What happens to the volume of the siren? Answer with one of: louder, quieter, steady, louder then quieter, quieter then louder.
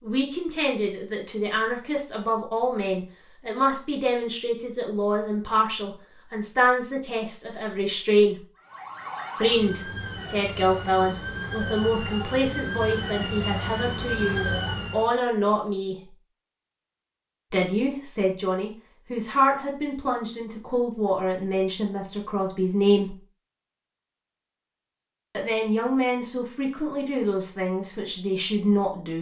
louder.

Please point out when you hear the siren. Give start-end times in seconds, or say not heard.
8.6-15.1.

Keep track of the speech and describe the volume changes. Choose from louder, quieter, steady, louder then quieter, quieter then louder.
steady.